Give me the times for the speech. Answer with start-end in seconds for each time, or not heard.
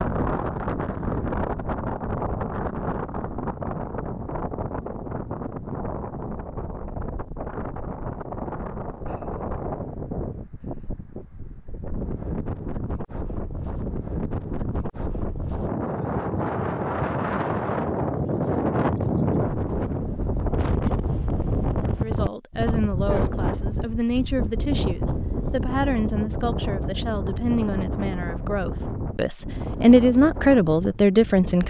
22.0-31.6.